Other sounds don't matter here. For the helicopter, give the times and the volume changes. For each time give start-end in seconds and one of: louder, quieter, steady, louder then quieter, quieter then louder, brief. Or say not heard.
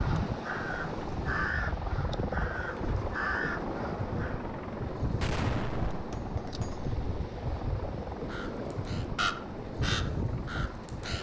0.0-11.1 quieter.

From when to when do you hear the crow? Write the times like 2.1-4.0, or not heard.
0.0-4.4, 8.2-11.1.